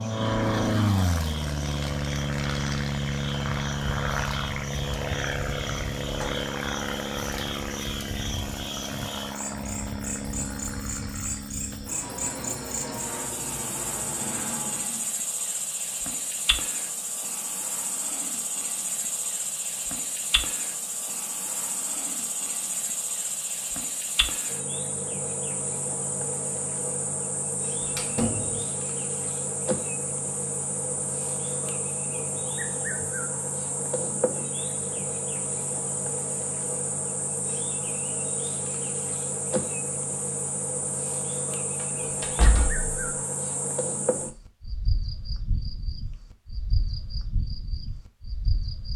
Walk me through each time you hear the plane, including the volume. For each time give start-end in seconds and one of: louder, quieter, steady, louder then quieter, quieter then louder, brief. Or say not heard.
0.0-15.2 quieter.